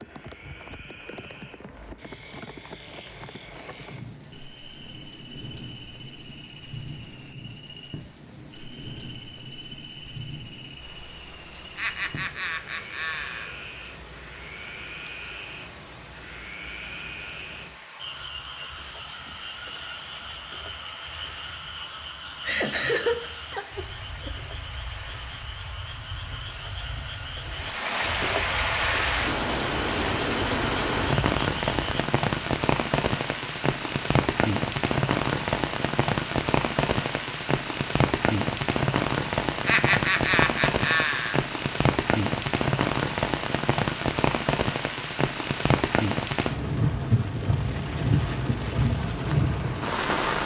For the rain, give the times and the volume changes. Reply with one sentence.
You can hear the rain from 0.0 to 50.4 s, getting louder.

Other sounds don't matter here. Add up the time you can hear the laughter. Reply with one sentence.
The laughter can be heard for 5 seconds in total.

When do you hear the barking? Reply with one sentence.
You can't hear the barking here.